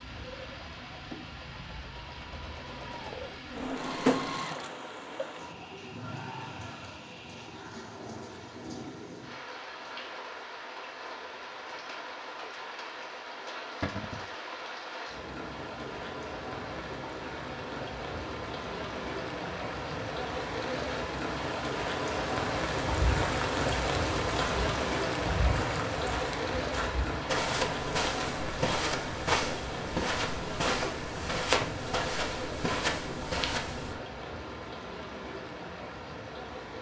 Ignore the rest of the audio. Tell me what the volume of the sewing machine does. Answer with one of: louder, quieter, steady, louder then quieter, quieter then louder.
louder.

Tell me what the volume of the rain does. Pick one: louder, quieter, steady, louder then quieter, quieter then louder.
louder then quieter.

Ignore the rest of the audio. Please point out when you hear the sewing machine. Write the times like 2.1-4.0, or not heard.
0.0-5.4.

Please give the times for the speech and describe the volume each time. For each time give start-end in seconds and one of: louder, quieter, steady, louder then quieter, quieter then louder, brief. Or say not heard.
not heard.